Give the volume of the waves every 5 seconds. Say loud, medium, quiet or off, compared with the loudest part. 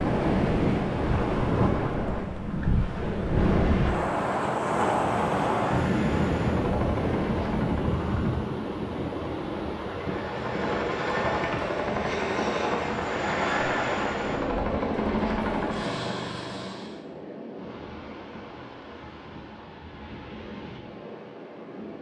loud, loud, medium, quiet, quiet.